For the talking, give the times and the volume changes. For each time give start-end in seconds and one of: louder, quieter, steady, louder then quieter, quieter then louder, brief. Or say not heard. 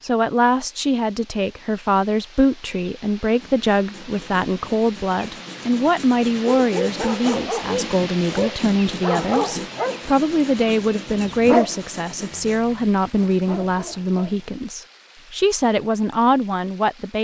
0.0-17.2 steady.